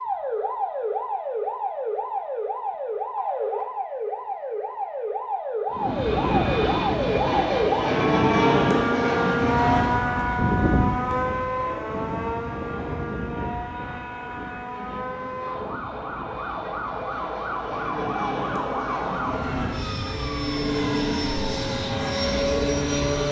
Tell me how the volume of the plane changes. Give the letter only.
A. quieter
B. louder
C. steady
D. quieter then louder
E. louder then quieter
D.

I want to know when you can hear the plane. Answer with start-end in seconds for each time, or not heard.
5.7-23.2.